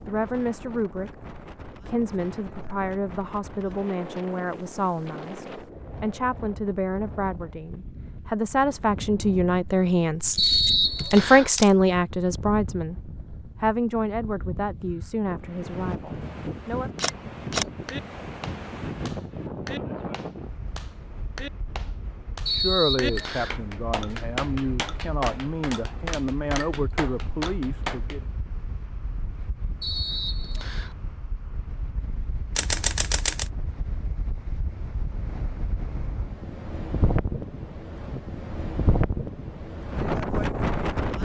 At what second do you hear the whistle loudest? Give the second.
11 s.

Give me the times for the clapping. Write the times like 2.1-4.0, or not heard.
17.9-28.2.